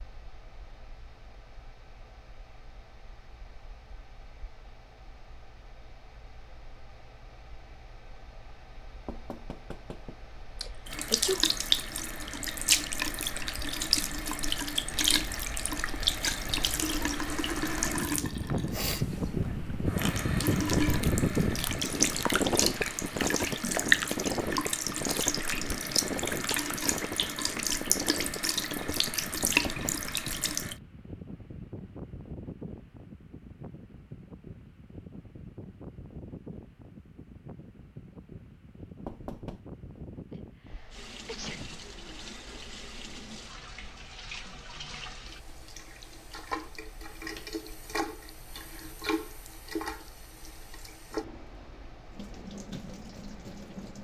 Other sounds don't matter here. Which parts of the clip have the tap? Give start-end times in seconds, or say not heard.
10.8-30.8, 40.9-53.9.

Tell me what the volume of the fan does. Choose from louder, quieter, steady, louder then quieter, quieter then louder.
louder then quieter.